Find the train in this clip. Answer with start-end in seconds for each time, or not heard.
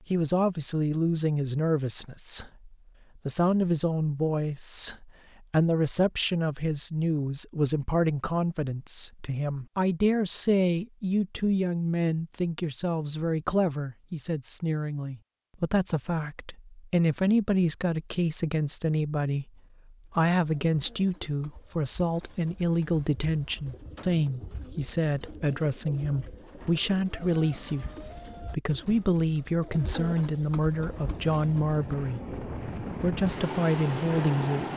30.7-34.7.